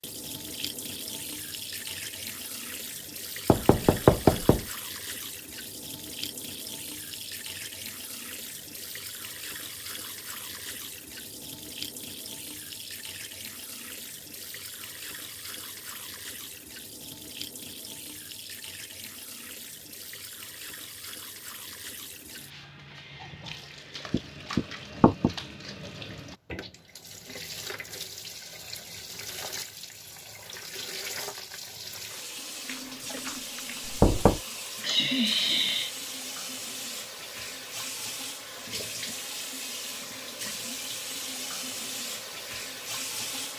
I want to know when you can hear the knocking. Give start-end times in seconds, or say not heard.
3.5-4.7, 24.1-25.4, 32.6-34.4.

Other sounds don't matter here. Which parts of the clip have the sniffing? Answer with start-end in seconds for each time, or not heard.
34.8-35.9.